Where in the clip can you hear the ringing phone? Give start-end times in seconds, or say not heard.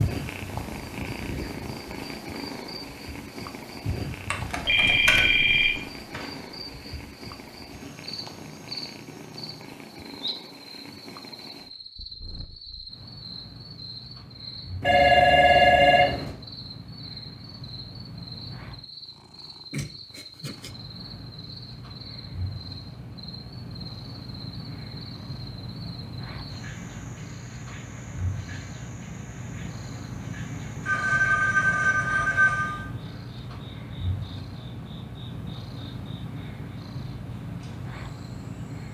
4.3-6.2, 14.8-16.4, 30.9-32.9.